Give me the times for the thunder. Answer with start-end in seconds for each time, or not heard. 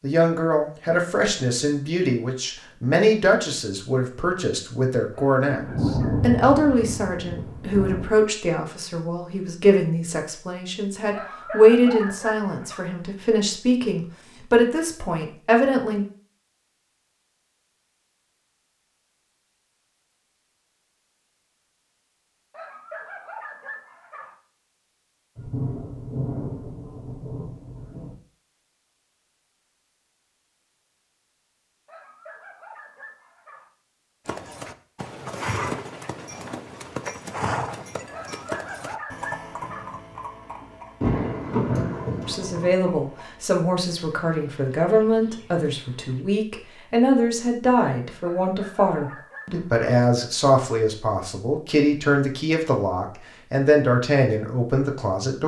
5.5-8.1, 25.4-28.1, 41.0-42.7.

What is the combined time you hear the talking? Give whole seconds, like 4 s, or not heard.
29 s.